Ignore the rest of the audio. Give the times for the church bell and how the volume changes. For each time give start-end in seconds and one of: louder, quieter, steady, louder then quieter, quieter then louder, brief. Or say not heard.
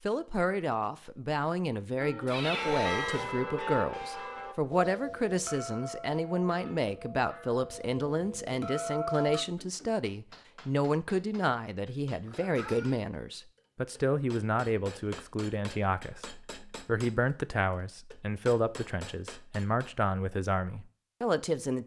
2.0-9.4 quieter then louder.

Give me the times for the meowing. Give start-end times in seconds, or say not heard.
2.2-3.4, 12.2-13.0.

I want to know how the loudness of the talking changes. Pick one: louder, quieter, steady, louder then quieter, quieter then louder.
steady.